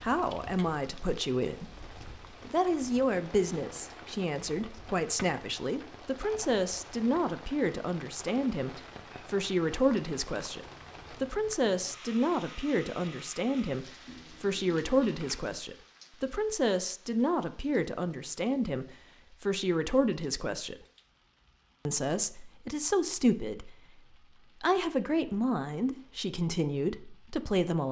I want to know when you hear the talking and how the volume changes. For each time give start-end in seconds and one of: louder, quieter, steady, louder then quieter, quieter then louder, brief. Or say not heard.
0.0-20.9 steady
21.9-27.8 quieter then louder.